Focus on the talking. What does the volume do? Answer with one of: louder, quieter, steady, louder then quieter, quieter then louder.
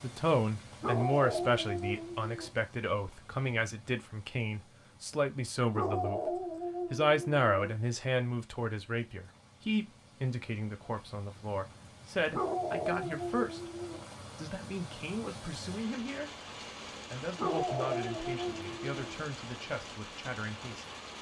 quieter.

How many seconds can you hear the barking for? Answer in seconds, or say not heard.
7 s.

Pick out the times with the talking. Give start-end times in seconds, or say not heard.
0.0-20.9.